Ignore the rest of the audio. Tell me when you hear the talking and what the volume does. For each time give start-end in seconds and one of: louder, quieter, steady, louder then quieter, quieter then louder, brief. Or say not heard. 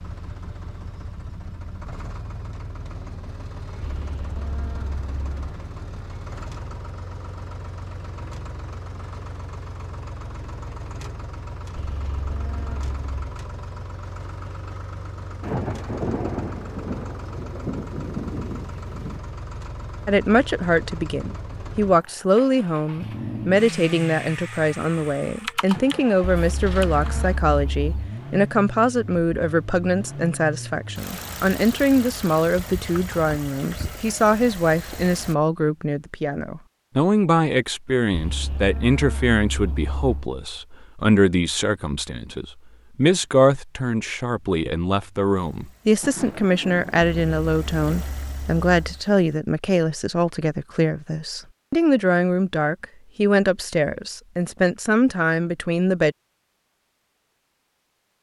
20.1-56.1 steady.